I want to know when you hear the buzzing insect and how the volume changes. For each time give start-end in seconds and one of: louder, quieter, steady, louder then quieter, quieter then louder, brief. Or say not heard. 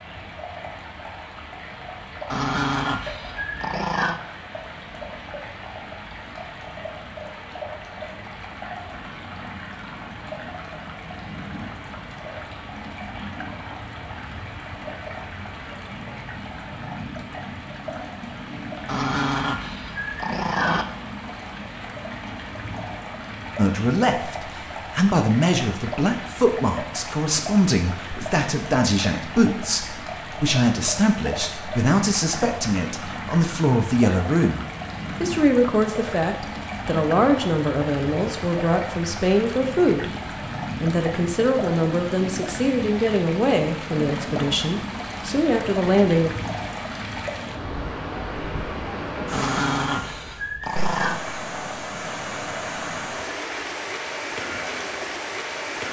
not heard.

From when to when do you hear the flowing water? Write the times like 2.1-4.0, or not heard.
0.0-55.8.